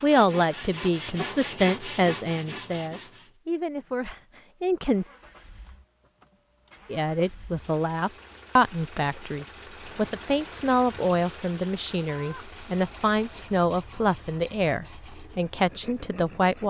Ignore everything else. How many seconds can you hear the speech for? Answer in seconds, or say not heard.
15 s.